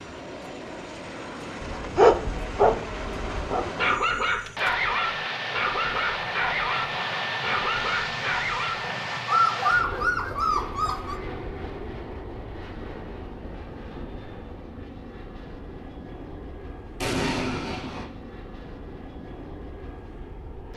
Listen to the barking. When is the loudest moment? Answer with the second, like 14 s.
2 s.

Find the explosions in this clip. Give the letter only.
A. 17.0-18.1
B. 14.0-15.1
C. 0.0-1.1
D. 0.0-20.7
A.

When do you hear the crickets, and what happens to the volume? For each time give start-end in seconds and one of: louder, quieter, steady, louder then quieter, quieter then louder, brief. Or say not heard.
not heard.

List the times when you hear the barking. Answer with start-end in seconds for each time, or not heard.
1.6-11.2.